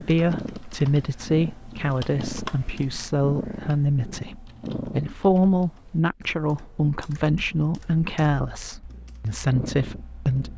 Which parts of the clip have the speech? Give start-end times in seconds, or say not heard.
0.1-10.5.